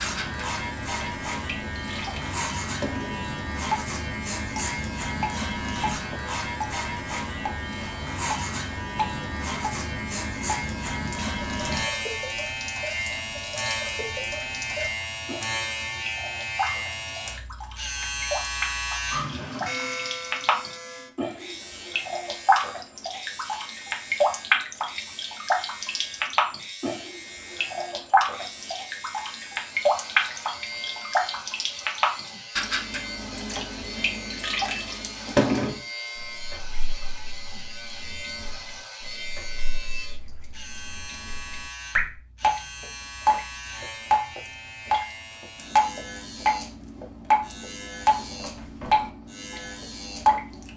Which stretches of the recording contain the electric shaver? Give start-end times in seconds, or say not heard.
0.0-50.7.